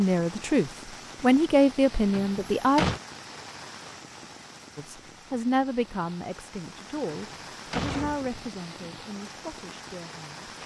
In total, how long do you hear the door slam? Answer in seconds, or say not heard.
2 s.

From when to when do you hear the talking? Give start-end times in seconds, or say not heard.
0.0-2.9, 4.8-10.5.